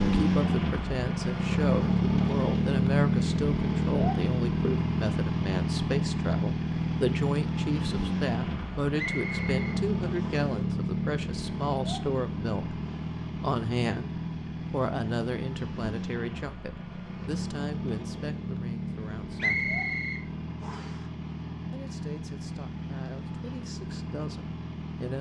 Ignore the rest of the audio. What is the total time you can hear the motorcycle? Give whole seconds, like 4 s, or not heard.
25 s.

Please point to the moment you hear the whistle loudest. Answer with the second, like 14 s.
20 s.